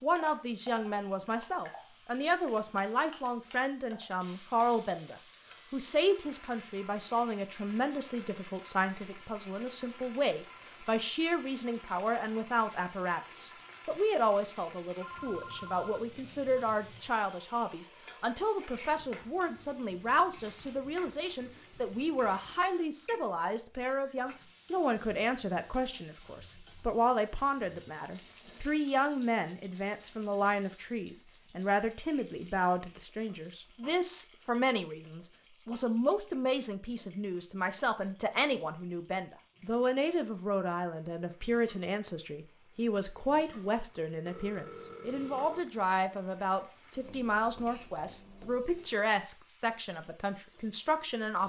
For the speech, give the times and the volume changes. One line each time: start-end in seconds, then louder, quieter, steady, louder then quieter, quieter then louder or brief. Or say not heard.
0.0-51.4 steady.